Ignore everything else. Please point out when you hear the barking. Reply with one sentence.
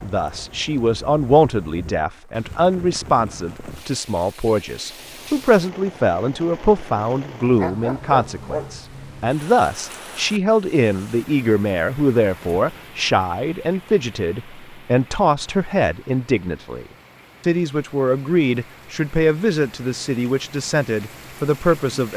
The barking can be heard from 7.4 to 8.8 s.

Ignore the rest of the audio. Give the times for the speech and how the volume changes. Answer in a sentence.
You can hear the speech from 0.0 to 22.1 s, at a steady volume.